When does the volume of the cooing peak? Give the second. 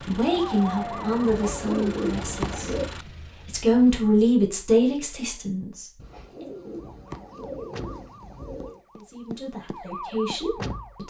2 s.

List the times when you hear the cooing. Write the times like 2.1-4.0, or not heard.
1.3-2.9, 6.0-8.8.